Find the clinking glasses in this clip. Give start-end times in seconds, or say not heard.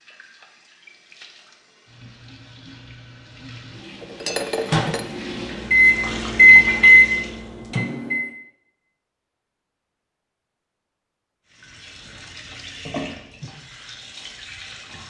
4.0-5.0.